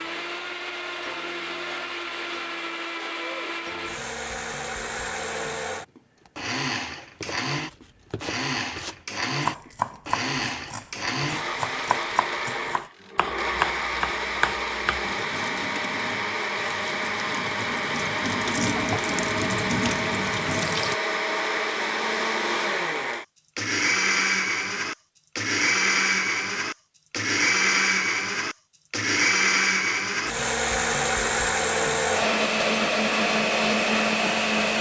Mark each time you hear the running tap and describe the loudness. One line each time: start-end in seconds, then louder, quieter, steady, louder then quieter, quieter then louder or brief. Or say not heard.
15.0-20.9 louder.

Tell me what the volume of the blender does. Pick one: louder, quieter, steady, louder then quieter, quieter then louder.
louder.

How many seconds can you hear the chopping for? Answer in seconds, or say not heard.
8 s.